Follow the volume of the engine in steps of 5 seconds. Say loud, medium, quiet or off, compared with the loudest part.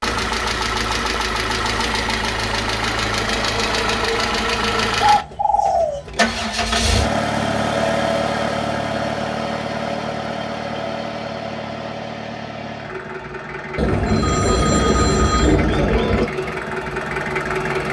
loud, loud, medium, loud.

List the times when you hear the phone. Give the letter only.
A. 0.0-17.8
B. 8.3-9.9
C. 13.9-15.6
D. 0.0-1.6
C.